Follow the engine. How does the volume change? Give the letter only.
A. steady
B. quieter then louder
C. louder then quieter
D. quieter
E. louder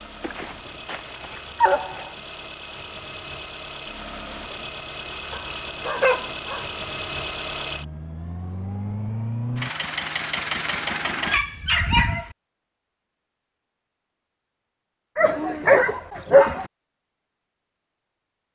E.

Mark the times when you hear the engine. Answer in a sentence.
You can hear the engine from 0.0 to 11.4 s.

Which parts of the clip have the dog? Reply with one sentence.
The dog can be heard from 0.2 to 2.1 s, from 5.3 to 6.7 s, from 11.2 to 12.3 s and from 15.2 to 16.6 s.